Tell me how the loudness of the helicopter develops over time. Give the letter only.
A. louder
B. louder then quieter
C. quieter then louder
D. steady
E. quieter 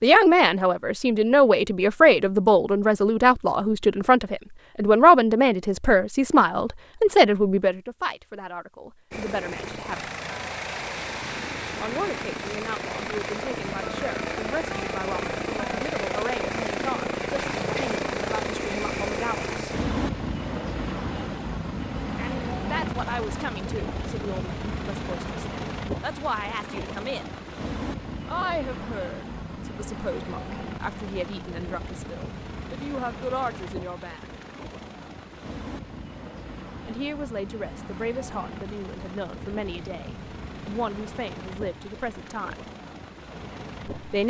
E.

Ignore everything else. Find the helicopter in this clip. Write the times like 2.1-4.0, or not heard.
9.1-44.2.